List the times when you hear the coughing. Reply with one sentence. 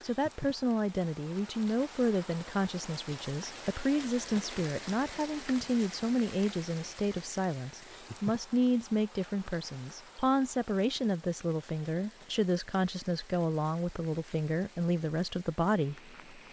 You can't hear the coughing here.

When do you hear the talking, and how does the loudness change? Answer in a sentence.
The talking can be heard from 0.0 to 16.1 s, at a steady volume.